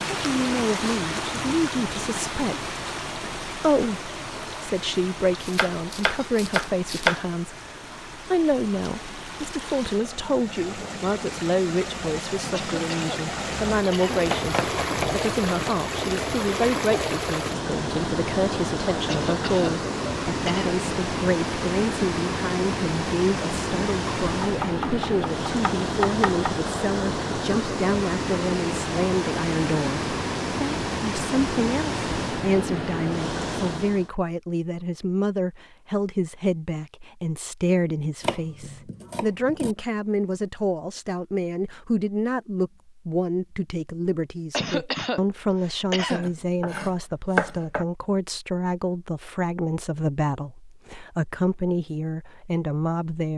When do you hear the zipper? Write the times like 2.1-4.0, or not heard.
not heard.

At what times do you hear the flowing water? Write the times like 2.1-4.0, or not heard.
0.0-34.1.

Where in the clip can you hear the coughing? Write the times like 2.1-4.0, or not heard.
12.5-14.3, 19.1-20.8, 44.5-46.3.